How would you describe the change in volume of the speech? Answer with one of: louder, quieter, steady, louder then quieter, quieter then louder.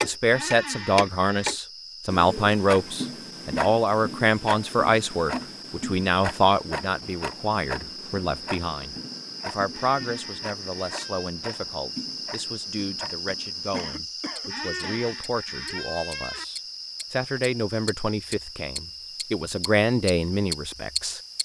quieter then louder.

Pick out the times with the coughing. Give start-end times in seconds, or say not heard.
13.7-15.0.